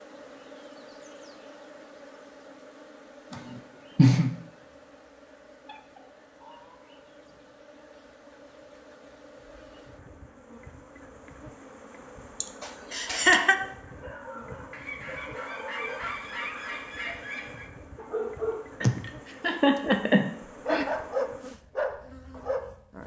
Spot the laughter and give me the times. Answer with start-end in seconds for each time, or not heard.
3.3-4.3, 12.4-13.6, 18.8-20.9.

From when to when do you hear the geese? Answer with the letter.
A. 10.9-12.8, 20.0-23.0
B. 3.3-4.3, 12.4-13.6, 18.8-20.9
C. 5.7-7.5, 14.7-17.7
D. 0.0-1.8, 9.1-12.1
C.